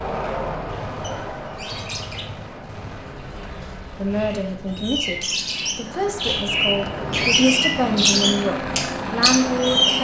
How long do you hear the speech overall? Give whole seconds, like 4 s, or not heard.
6 s.